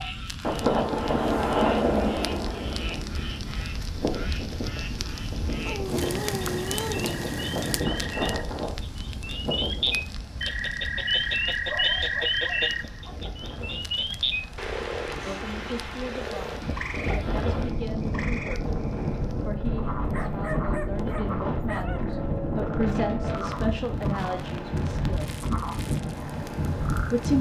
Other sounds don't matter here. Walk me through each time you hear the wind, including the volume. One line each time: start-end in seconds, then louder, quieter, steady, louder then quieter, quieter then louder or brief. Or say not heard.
0.0-27.3 quieter then louder.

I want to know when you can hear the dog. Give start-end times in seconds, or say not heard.
5.7-7.1, 11.7-13.2, 20.1-22.1.